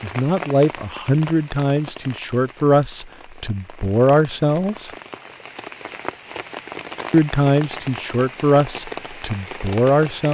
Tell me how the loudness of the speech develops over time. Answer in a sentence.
The volume of the speech stays about the same.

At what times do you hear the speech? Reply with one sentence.
You can hear the speech from 0.0 to 4.9 s and from 7.1 to 10.2 s.